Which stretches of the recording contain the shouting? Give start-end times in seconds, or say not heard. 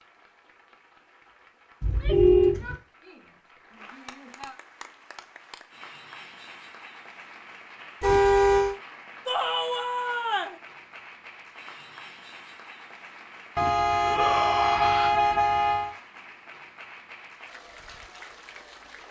1.8-4.5, 9.2-10.6, 14.0-15.2.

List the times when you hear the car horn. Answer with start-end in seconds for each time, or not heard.
1.8-2.8, 8.0-8.8, 13.6-15.9.